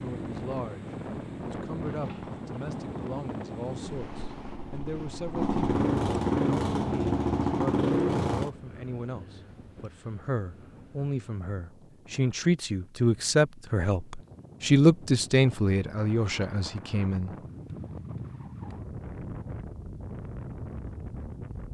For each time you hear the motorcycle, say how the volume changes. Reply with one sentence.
The motorcycle can be heard from 0.0 to 8.5 s, getting louder.